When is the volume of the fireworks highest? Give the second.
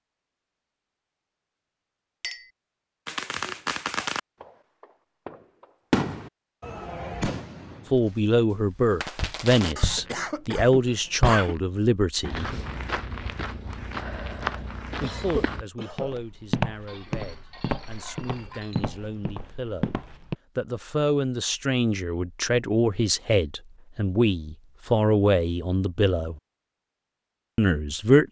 6 s.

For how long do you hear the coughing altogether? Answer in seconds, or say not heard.
3 s.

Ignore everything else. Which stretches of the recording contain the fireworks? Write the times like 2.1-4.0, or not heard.
3.0-9.8.